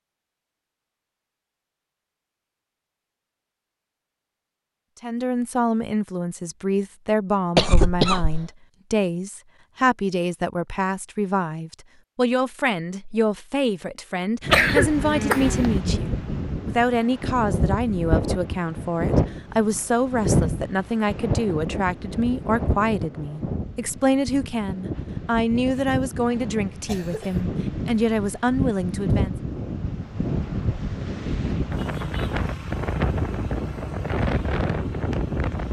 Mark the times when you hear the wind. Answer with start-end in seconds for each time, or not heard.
14.4-35.6.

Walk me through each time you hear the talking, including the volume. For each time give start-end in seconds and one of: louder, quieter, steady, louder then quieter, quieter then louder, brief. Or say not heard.
5.0-29.4 steady.